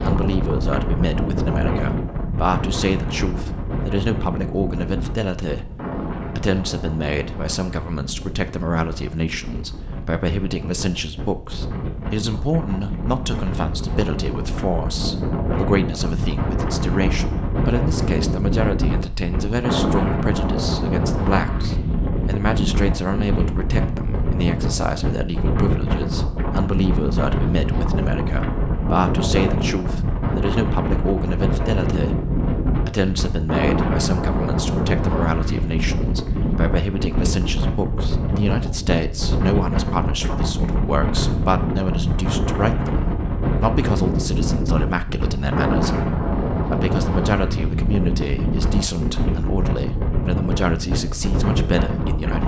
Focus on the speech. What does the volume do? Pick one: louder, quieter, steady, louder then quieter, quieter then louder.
steady.